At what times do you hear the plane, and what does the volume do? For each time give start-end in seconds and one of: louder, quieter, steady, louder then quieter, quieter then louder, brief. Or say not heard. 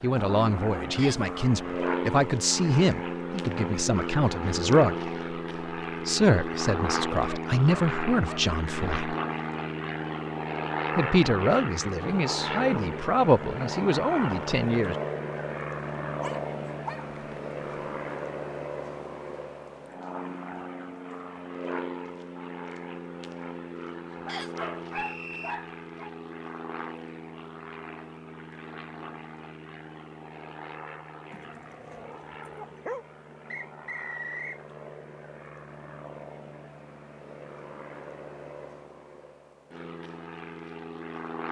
0.0-41.4 quieter.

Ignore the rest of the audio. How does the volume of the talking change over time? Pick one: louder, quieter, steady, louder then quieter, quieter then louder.
steady.